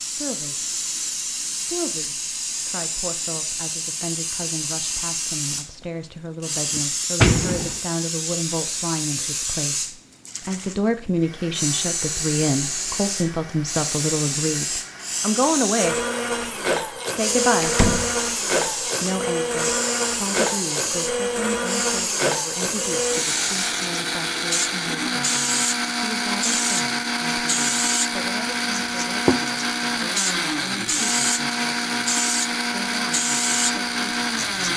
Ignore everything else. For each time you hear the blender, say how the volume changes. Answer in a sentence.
You can hear the blender from 11.2 to 34.7 s, getting louder.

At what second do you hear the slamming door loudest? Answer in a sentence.
The volume of the slamming door peaks at 7 seconds.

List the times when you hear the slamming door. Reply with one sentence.
The slamming door can be heard from 6.8 to 7.8 s and from 17.6 to 18.1 s.